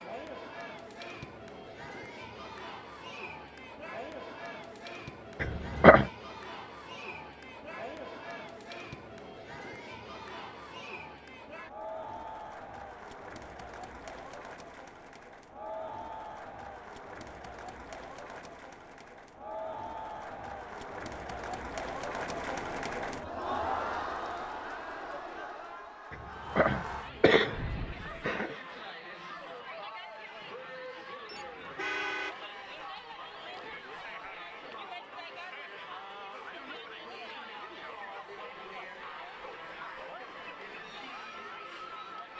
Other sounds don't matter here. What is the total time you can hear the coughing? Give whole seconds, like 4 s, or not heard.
3 s.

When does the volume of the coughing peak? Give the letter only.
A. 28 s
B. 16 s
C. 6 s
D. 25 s
C.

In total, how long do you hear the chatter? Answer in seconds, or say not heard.
42 s.